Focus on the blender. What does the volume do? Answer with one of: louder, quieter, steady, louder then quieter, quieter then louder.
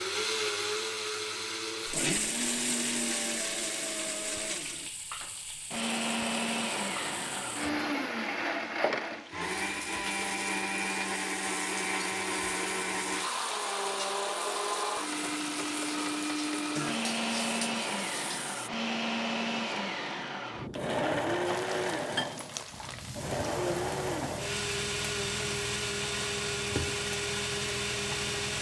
steady.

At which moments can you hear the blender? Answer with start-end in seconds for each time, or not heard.
0.0-28.5.